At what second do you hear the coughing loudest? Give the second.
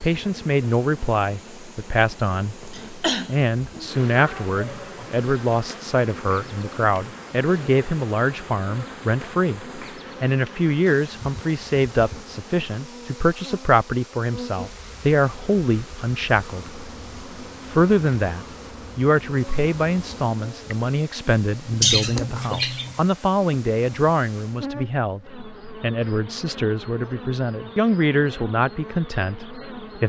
22 s.